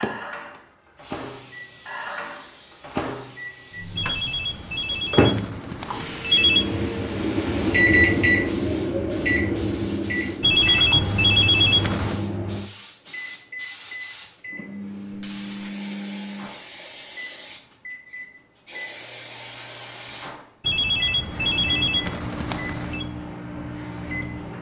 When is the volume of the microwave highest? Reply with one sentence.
The volume of the microwave peaks at 8 seconds.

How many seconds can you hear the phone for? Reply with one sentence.
You can hear the phone for 7 seconds altogether.